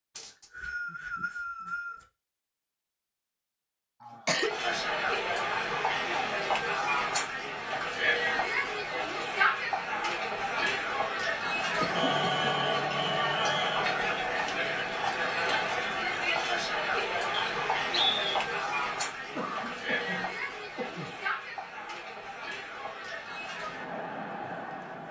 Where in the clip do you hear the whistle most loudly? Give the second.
18 s.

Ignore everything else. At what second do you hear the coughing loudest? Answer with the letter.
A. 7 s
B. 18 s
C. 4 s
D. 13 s
C.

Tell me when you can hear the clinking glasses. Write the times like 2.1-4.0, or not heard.
not heard.